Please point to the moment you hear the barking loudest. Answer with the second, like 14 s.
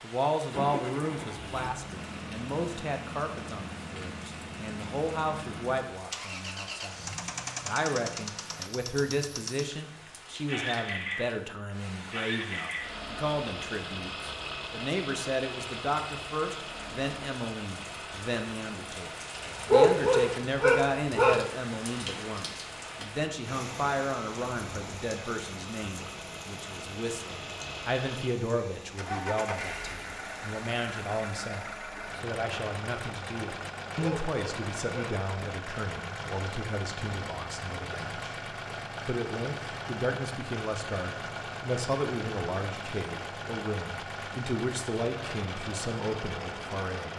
20 s.